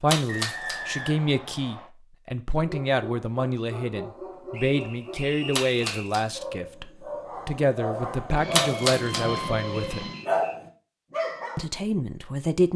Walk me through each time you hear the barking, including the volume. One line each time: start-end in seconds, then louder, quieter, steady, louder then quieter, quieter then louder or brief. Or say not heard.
2.6-11.7 louder.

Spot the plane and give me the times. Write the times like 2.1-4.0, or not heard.
8.3-10.2.